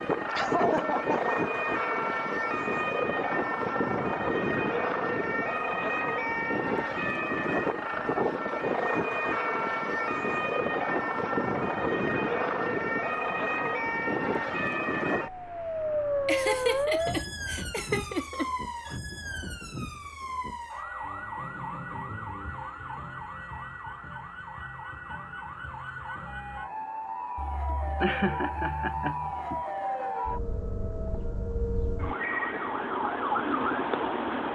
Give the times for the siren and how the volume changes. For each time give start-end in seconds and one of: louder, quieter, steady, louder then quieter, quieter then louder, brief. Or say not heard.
0.0-34.4 quieter then louder.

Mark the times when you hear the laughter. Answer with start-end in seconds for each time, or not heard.
0.3-1.4, 16.2-18.5, 27.4-29.6.